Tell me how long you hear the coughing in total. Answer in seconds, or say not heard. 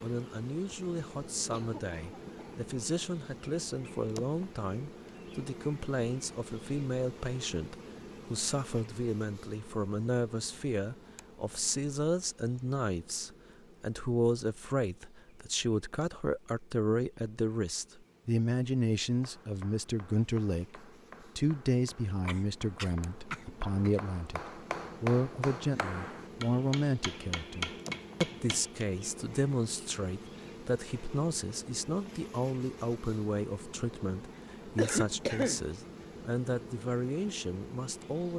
4 s.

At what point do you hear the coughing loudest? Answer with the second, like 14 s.
35 s.